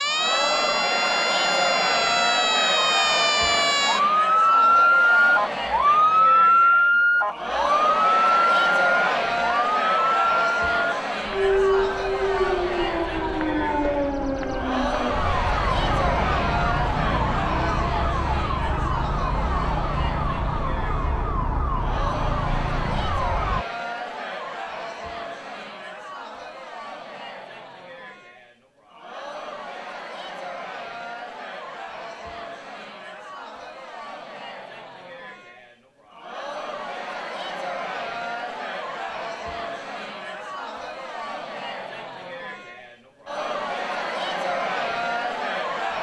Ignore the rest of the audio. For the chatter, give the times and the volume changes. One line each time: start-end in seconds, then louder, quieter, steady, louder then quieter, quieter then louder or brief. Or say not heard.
0.0-45.9 quieter then louder.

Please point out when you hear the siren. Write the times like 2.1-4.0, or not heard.
0.0-23.6.